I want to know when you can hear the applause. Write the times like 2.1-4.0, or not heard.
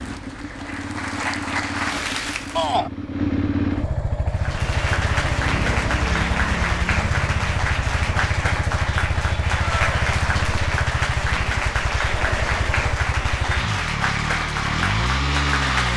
0.0-2.8, 4.3-15.9.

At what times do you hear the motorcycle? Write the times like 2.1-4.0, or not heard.
0.0-15.9.